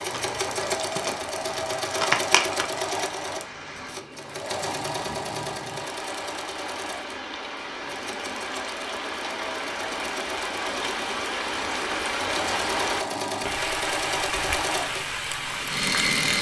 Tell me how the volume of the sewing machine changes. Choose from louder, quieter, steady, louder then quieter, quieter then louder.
quieter then louder.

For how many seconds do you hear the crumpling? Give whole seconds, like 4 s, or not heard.
3 s.